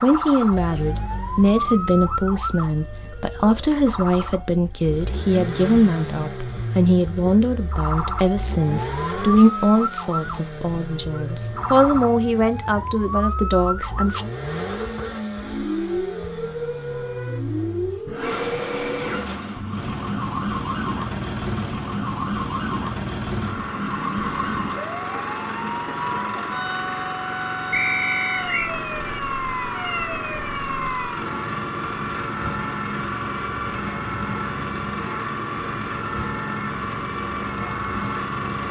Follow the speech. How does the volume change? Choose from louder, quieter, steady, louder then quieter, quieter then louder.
steady.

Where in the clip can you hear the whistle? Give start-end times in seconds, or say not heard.
27.7-28.7.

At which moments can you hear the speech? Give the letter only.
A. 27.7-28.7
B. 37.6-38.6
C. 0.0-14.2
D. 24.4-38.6
C.